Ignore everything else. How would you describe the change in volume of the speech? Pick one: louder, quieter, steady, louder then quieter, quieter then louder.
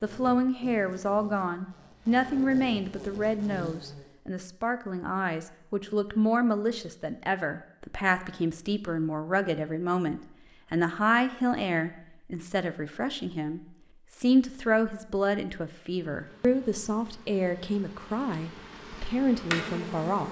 steady.